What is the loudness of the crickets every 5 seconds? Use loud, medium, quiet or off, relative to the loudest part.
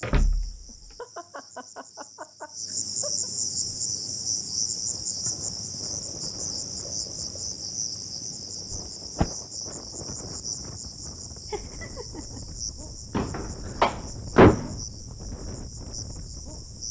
loud, loud, medium, medium.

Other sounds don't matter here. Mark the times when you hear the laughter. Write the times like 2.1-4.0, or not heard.
0.7-3.3, 11.5-12.4.